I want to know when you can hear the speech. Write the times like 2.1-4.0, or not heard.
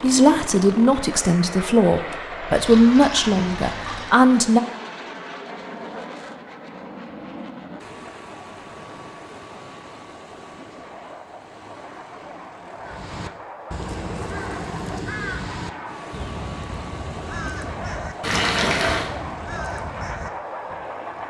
0.0-4.6.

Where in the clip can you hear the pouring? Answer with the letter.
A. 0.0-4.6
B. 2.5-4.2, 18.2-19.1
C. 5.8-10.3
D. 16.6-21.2
B.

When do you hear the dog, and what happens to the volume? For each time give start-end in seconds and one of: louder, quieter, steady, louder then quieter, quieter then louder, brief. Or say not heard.
not heard.